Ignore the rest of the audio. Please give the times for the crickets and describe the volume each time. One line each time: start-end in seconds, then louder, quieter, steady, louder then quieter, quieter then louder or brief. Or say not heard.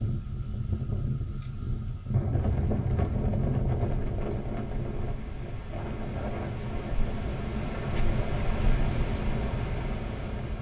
2.0-10.5 louder.